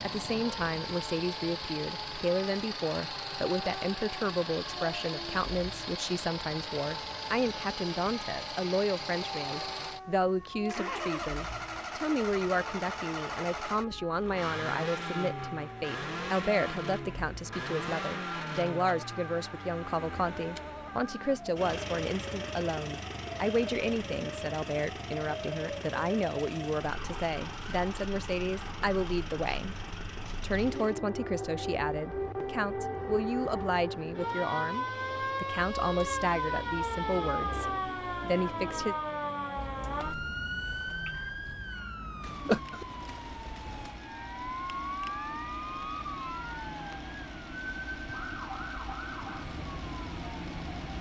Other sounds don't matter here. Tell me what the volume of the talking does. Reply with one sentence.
The volume of the talking stays about the same.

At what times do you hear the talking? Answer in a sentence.
You can hear the talking from 0.0 to 29.8 s and from 30.4 to 39.0 s.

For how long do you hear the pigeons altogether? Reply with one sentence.
The pigeons can't be heard in this clip.